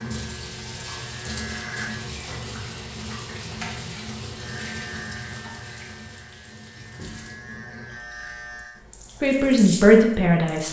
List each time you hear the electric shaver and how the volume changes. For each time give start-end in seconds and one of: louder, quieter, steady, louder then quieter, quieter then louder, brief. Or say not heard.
0.0-2.1 brief
4.3-8.8 quieter then louder.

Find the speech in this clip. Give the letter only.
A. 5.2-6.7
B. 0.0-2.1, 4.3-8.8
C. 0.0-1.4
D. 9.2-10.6
D.